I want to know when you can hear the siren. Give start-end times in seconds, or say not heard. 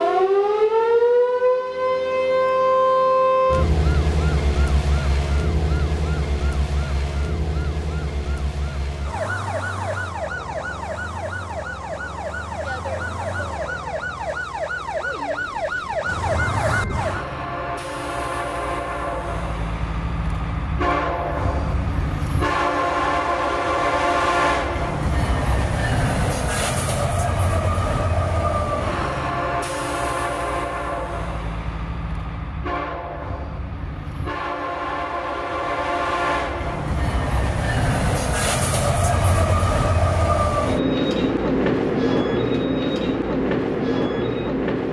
0.0-17.2.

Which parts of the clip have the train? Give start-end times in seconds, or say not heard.
16.2-44.8.